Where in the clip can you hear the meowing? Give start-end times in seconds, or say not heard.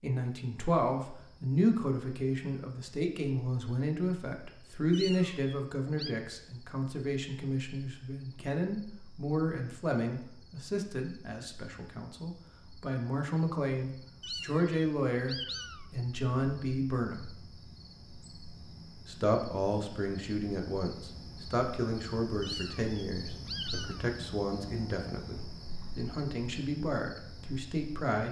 4.9-6.2, 14.2-15.9, 22.4-24.1.